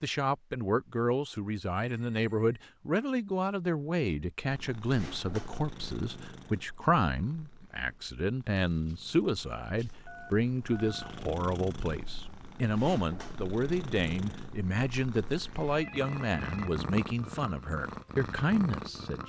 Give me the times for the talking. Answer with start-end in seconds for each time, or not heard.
0.0-19.2.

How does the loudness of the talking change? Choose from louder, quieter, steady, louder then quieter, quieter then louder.
steady.